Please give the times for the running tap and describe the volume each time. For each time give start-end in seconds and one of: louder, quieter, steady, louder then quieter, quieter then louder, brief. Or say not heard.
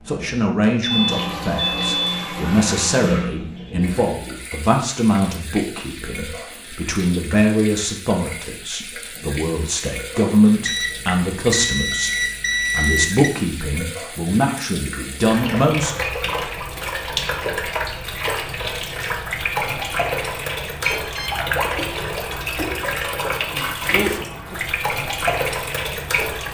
0.0-26.4 quieter then louder.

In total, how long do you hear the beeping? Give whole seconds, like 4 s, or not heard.
5 s.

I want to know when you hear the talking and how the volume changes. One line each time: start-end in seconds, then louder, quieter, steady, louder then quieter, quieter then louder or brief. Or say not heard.
0.1-15.9 steady.